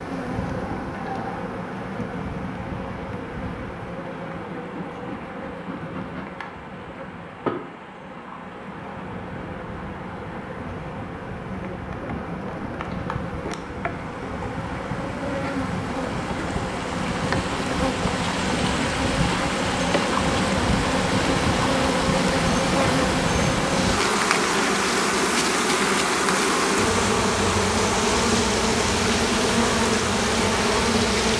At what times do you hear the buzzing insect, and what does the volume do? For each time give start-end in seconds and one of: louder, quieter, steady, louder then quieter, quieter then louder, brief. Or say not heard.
0.0-31.3 louder.